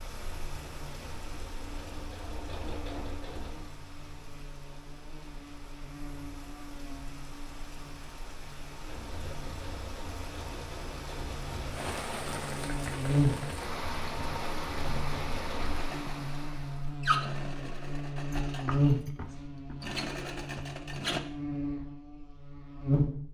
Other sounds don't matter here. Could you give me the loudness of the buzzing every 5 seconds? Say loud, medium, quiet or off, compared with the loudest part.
quiet, quiet, loud, loud, loud.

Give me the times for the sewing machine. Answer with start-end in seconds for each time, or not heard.
0.0-3.6, 8.8-21.2.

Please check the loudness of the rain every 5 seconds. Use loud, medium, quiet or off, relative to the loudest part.
medium, medium, loud, loud, off.